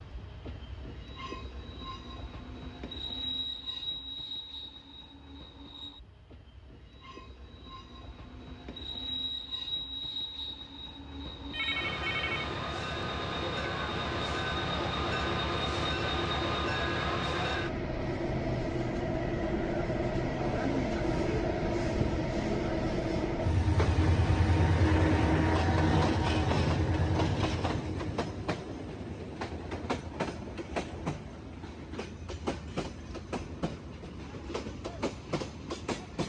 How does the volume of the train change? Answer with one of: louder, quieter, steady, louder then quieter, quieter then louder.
louder then quieter.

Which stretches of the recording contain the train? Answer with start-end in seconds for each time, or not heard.
0.0-36.2.